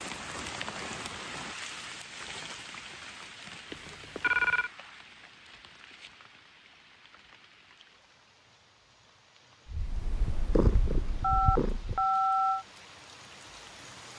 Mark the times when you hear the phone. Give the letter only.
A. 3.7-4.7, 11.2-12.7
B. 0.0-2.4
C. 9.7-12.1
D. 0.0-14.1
A.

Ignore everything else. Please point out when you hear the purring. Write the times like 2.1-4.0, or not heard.
9.7-12.1.